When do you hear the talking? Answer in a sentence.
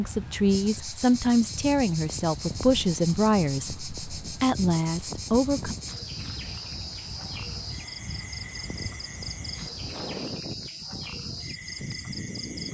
The talking can be heard from 0.0 to 5.8 s.